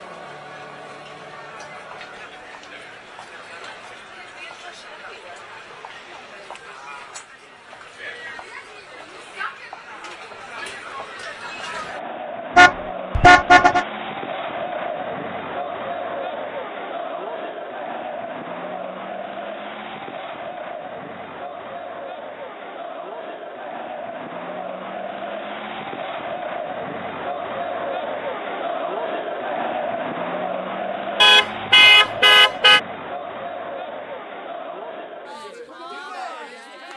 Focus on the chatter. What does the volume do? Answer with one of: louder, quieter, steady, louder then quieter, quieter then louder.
louder.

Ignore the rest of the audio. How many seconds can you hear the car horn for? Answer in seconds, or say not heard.
3 s.